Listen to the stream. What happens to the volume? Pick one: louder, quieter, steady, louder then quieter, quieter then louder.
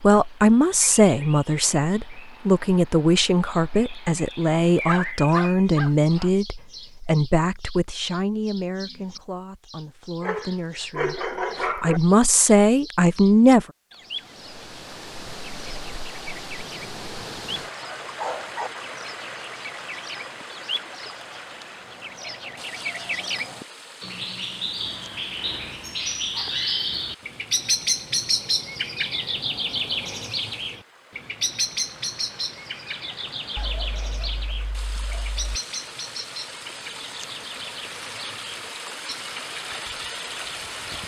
quieter then louder.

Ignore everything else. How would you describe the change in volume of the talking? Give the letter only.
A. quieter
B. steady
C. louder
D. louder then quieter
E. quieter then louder
E.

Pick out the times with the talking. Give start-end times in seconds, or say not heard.
0.0-13.7.